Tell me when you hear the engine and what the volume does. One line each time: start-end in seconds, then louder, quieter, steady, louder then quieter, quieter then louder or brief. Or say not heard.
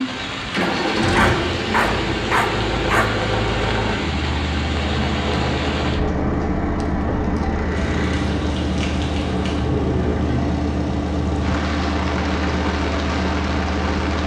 0.1-14.2 steady.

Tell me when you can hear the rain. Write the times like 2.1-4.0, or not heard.
0.0-14.2.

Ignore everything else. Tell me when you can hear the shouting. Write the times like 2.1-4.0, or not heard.
not heard.